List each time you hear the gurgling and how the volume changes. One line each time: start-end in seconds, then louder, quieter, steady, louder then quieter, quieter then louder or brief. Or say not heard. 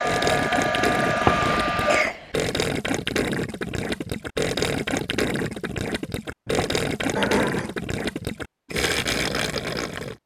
0.0-10.2 steady.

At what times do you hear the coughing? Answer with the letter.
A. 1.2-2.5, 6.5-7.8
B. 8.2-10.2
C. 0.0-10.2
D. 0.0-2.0
A.